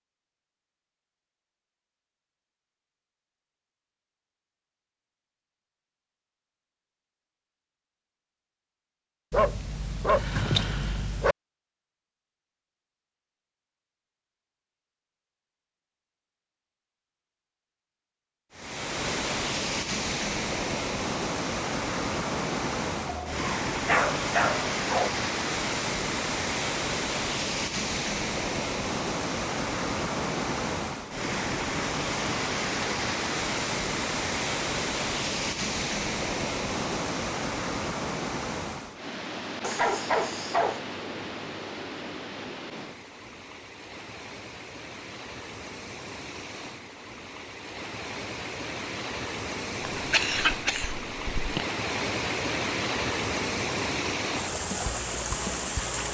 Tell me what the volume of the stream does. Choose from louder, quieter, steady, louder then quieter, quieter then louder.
quieter then louder.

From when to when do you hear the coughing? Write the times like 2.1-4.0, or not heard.
50.0-51.6.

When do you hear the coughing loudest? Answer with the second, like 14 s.
50 s.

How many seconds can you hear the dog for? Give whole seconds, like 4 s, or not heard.
5 s.